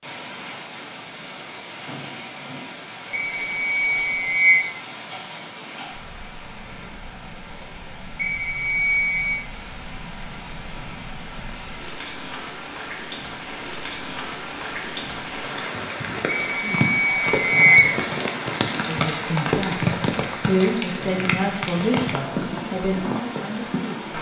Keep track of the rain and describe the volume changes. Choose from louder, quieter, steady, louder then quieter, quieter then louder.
louder.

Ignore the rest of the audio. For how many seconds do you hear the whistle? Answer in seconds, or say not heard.
4 s.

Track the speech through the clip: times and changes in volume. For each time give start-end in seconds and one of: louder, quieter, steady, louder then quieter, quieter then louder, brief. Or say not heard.
18.7-24.1 louder then quieter.